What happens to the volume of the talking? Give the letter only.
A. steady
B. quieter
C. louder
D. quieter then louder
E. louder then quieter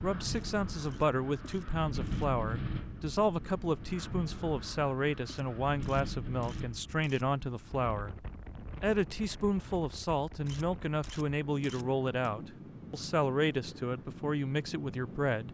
A.